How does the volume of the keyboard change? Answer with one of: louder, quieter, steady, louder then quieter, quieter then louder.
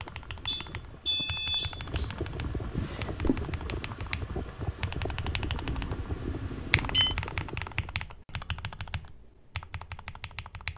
louder then quieter.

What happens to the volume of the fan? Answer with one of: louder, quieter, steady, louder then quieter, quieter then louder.
louder.